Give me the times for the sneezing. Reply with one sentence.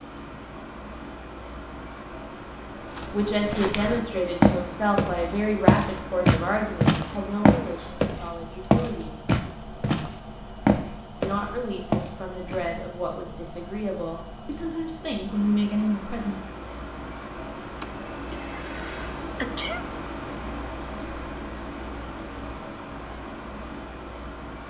The sneezing can be heard from 17.8 to 19.9 s.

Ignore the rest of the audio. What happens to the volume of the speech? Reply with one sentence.
The loudness of the speech goes down, then up.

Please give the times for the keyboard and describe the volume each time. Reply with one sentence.
The keyboard can't be heard in this clip.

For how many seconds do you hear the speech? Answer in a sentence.
You can hear the speech for 11 seconds altogether.